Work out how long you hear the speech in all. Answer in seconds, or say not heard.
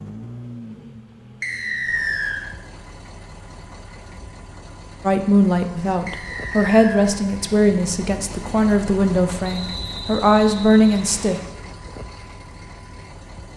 6 s.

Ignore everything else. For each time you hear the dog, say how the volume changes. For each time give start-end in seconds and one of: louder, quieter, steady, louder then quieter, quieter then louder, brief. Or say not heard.
not heard.